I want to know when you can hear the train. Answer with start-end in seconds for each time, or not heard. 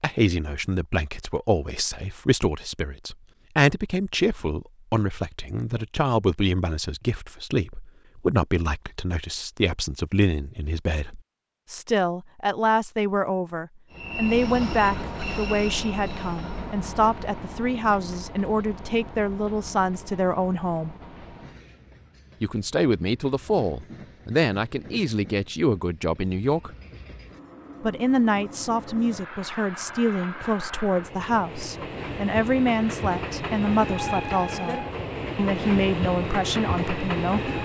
13.9-37.6.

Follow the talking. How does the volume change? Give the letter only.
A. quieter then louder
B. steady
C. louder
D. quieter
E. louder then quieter
B.